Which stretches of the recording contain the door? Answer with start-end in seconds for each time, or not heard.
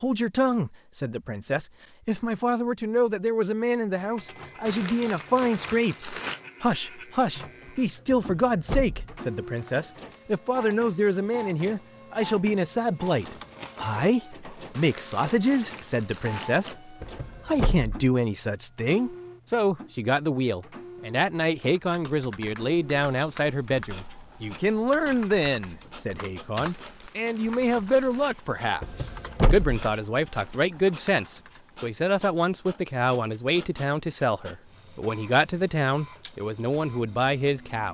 8.1-9.2, 17.0-17.9, 28.8-29.8.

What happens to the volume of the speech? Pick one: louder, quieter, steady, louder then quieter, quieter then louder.
steady.